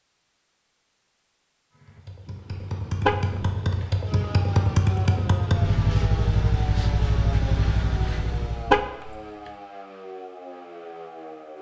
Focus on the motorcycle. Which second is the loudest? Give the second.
5 s.